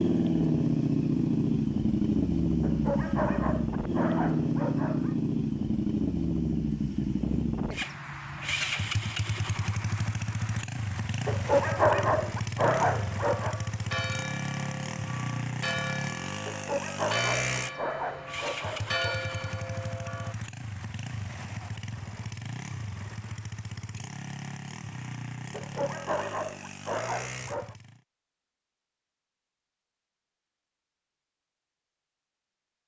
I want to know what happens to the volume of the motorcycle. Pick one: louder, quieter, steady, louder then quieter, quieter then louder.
quieter.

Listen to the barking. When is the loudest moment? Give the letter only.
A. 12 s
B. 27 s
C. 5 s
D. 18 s
A.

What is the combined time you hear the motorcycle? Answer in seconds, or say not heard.
28 s.